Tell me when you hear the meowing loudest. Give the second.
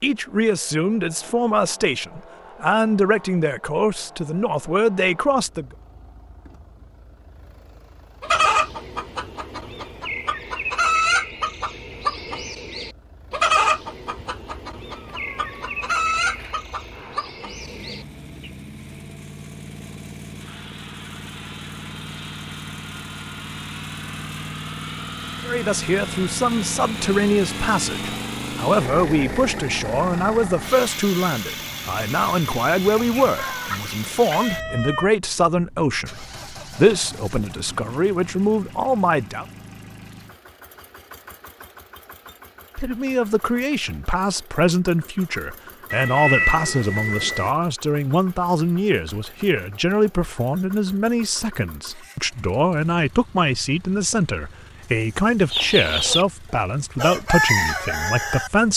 46 s.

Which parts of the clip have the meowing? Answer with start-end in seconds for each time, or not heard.
14.8-16.6, 33.4-35.1, 45.9-47.5.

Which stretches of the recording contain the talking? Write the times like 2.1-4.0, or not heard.
0.0-5.7, 25.4-39.5, 42.8-58.7.